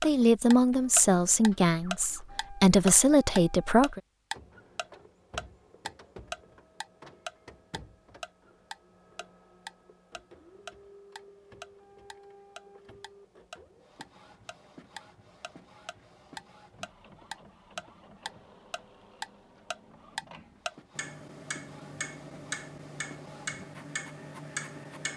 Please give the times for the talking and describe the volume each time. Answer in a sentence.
You can hear the talking from 0.0 to 4.0 s, getting quieter then louder.